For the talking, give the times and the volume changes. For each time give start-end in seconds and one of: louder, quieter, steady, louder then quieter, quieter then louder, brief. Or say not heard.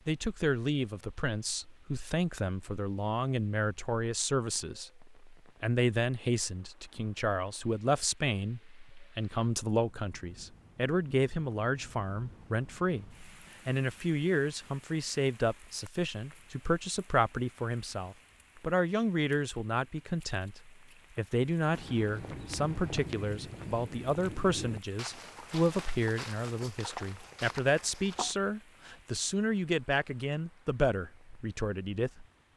0.1-32.2 steady.